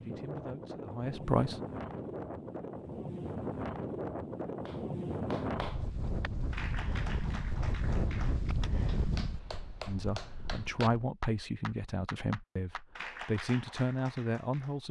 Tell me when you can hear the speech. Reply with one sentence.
You can hear the speech from 0.0 to 1.6 s and from 9.8 to 14.8 s.